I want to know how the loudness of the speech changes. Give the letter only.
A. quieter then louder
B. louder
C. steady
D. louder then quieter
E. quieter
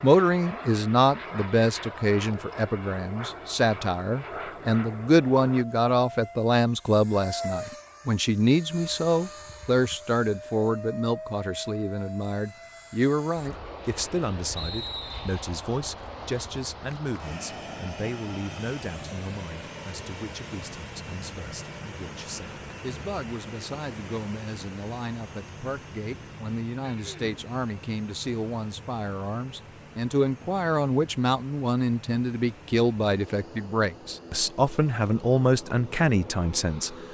A.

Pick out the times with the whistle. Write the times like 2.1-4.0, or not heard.
14.6-15.4.